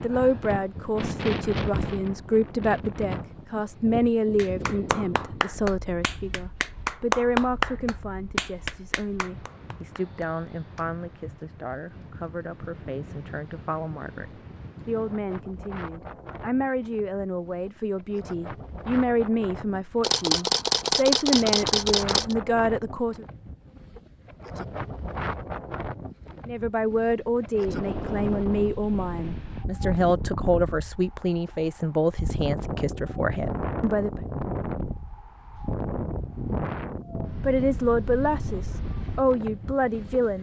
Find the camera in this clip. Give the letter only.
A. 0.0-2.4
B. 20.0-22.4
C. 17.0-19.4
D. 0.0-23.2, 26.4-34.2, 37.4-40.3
B.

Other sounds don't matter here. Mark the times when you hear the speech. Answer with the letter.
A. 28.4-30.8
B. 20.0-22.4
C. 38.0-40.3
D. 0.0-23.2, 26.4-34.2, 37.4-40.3
D.